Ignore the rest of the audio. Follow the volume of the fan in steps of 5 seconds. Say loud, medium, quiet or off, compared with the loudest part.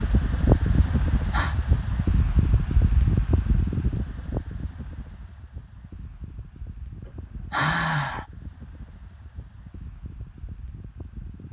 loud, quiet, quiet.